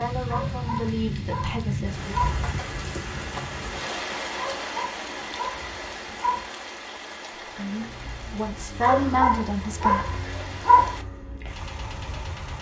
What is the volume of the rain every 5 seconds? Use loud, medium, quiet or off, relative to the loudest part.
loud, medium, medium.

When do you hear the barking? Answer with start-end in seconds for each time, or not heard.
0.2-2.4, 4.3-6.5, 8.8-10.9.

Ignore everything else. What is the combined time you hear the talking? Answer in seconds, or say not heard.
5 s.